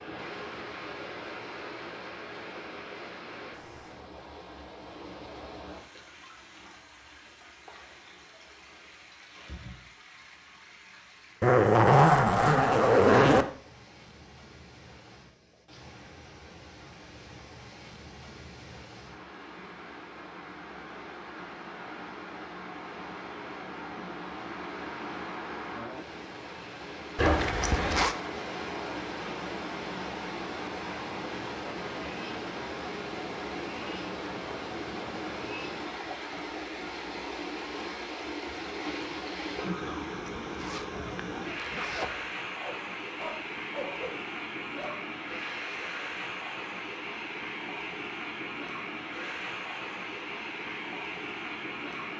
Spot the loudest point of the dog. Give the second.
44 s.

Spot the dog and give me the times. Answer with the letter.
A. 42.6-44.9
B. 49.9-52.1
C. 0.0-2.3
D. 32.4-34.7
A.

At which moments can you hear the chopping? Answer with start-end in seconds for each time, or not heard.
not heard.